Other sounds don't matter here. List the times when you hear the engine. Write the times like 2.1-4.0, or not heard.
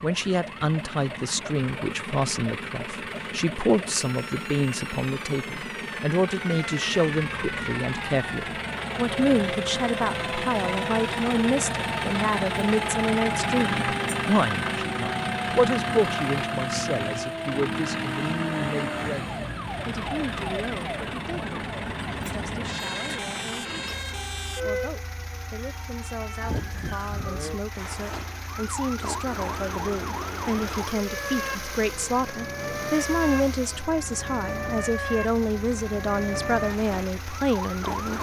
0.0-38.1.